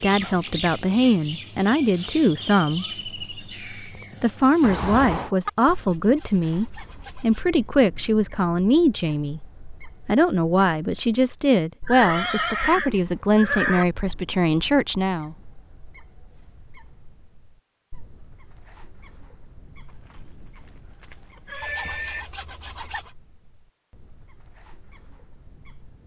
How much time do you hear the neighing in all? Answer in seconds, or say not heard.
5 s.